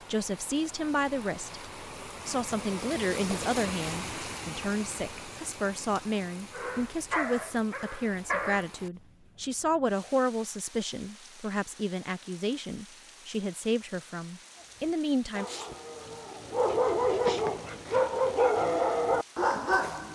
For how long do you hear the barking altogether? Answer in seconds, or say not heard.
8 s.